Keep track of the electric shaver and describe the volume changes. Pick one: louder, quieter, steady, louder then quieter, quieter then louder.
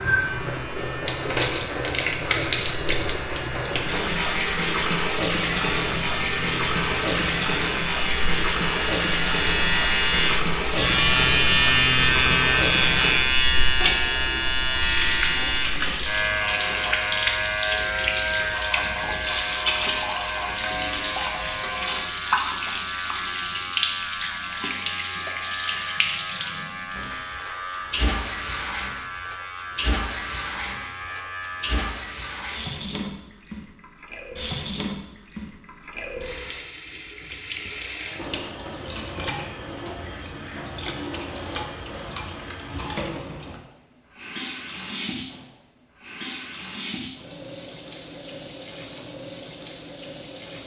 louder then quieter.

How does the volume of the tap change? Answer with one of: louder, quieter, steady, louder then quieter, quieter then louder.
quieter.